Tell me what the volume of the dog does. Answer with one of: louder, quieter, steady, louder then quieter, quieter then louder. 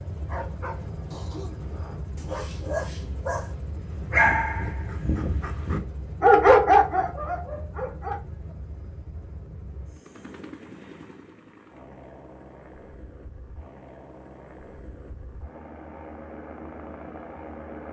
louder.